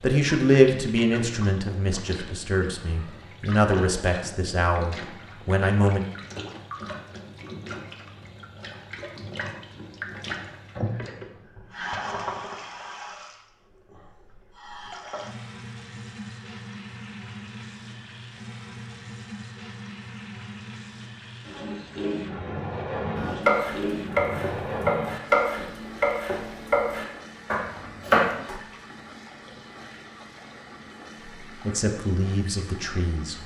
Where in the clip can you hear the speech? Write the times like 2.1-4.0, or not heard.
0.0-6.0, 31.6-33.4.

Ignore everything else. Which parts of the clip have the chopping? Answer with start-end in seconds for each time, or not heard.
23.1-28.6.